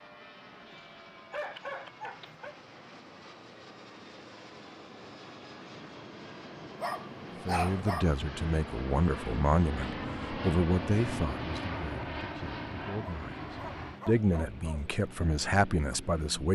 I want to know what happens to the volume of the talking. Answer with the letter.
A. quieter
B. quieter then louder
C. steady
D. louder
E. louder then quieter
B.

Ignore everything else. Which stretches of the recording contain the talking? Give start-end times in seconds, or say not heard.
7.5-16.4.